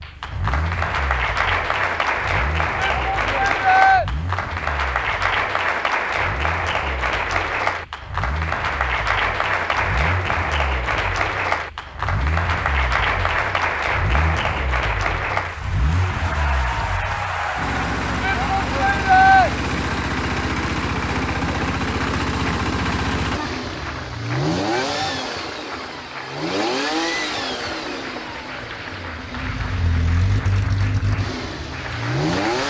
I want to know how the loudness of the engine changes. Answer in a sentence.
The volume of the engine goes up.